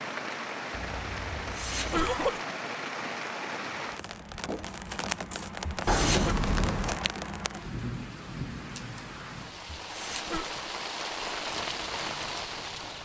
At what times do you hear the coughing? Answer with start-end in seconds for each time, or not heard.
1.4-2.4, 5.7-6.3, 9.8-10.5.